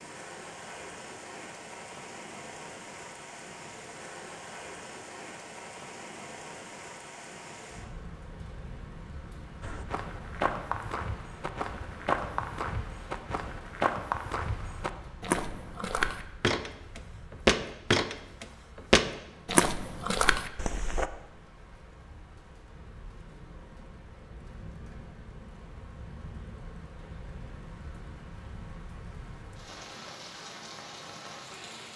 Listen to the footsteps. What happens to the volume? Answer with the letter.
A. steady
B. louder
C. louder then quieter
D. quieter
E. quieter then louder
B.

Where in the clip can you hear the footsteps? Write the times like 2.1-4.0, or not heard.
9.6-21.1.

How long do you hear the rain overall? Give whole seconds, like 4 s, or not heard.
32 s.